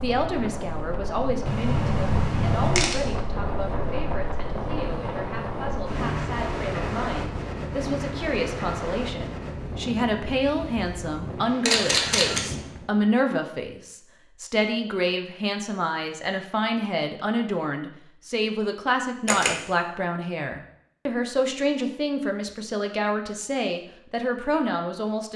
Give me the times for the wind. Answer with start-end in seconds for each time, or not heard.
0.0-12.9.